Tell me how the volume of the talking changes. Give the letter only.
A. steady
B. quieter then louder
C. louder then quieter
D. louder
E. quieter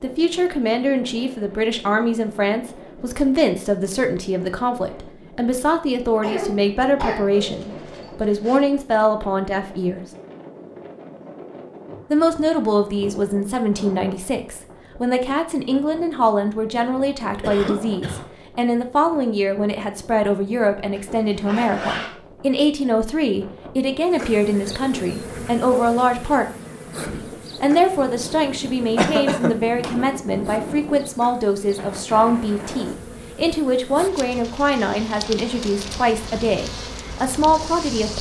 A.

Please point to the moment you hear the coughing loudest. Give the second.
29 s.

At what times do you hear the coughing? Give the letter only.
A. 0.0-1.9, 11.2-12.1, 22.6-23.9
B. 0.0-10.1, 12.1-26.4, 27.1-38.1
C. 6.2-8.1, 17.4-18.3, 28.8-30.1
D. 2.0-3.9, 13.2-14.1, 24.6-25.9
C.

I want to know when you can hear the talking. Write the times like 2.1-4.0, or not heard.
0.0-10.1, 12.1-26.4, 27.1-38.1.